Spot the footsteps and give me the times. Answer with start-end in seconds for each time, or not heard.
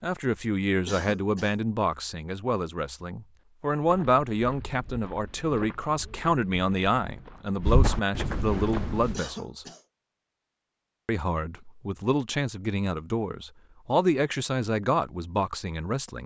3.8-9.2.